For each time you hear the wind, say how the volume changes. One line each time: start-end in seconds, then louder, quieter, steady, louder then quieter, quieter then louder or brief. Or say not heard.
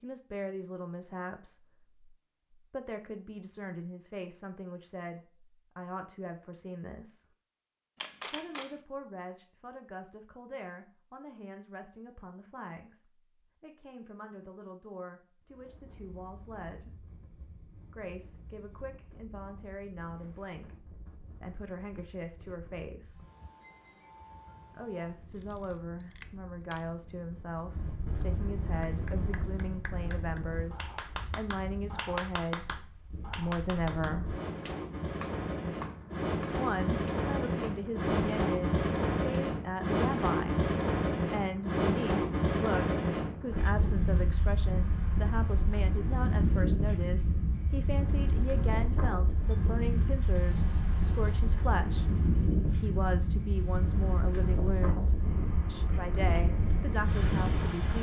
15.4-57.9 louder.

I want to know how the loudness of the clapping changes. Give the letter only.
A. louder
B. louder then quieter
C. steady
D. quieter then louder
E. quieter
B.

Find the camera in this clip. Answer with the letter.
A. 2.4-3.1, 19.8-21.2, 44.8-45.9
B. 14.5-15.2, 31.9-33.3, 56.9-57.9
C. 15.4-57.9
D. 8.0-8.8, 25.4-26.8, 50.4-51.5
D.